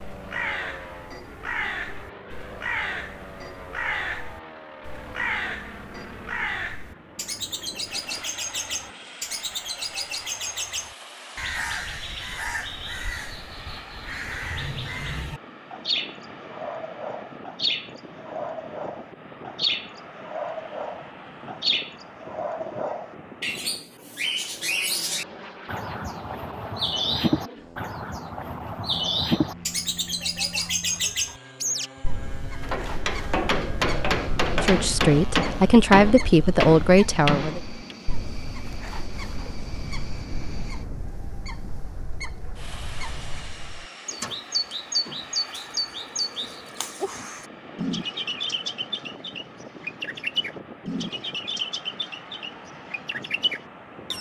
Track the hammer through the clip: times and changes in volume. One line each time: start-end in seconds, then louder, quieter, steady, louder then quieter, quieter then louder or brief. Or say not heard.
32.6-38.0 steady.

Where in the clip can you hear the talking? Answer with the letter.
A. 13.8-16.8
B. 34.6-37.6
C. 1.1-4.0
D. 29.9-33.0
B.